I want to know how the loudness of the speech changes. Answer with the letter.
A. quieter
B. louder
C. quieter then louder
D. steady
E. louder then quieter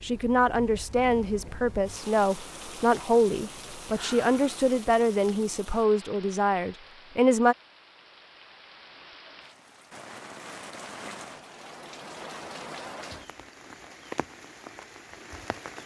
D.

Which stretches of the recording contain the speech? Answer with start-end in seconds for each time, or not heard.
0.0-7.5.